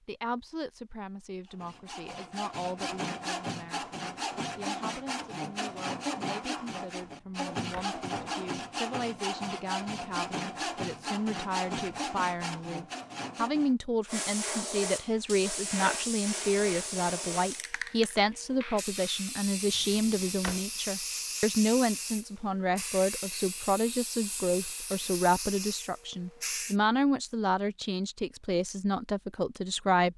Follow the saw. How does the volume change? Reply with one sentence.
The volume of the saw stays about the same.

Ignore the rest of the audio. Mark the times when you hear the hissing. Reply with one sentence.
You can hear the hissing from 14.1 to 26.8 s.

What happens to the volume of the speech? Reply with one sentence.
The volume of the speech goes up.